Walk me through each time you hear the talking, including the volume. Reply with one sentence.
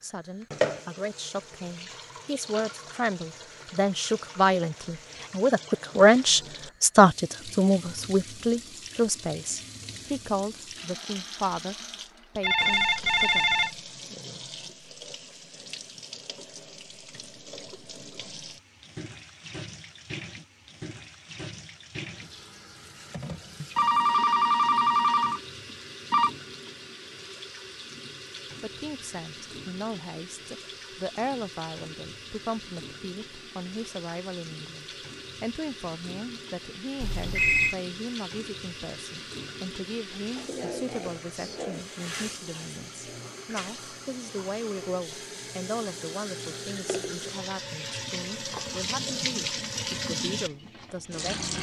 You can hear the talking from 0.0 to 11.8 s, getting louder then quieter; briefly from 12.3 to 13.7 s; and from 28.6 to 51.5 s, at a steady volume.